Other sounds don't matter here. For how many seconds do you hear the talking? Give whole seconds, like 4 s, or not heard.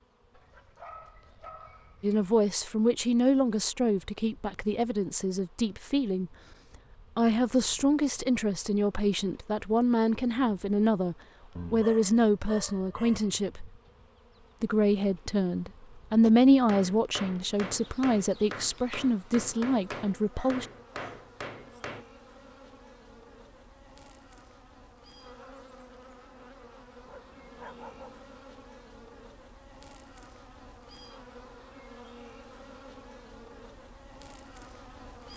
17 s.